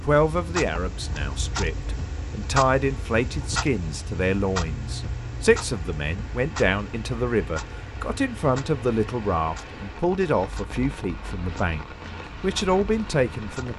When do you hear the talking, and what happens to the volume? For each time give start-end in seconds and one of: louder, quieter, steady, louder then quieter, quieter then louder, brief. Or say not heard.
0.1-13.7 steady.